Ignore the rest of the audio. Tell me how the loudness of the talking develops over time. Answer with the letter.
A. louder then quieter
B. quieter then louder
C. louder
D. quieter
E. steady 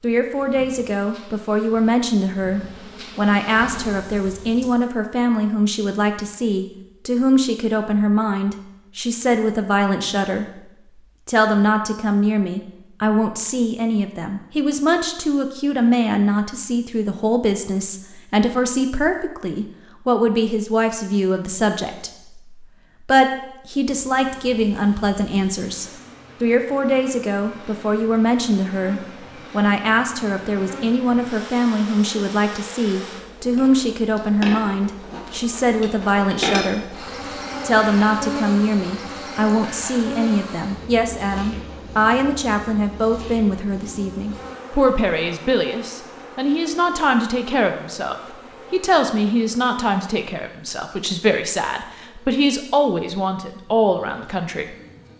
E.